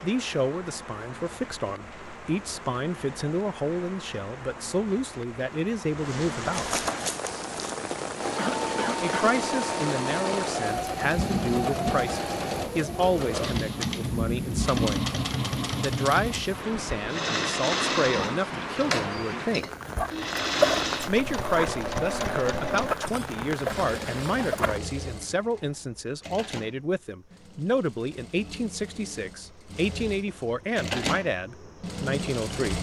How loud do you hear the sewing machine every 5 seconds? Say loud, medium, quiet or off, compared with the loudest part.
off, loud, loud, loud, loud, quiet, loud.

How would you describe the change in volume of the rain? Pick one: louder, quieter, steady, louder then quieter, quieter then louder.
louder.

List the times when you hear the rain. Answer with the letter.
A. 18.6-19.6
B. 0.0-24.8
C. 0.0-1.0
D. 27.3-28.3
B.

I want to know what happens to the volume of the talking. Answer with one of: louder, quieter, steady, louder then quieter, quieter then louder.
steady.